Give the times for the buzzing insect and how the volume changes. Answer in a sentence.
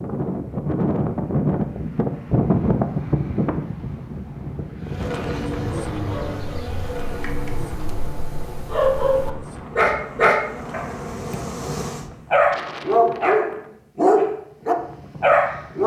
You can hear the buzzing insect from 4.8 to 12.1 s, getting quieter then louder.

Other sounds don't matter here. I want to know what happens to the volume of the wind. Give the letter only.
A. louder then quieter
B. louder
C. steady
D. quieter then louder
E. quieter
E.